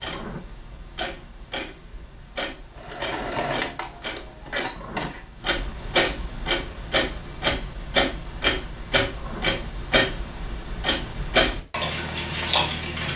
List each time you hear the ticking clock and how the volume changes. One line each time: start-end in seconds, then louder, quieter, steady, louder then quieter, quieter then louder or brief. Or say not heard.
0.0-13.1 louder.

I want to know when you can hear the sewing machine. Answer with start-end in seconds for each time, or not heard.
2.8-5.2.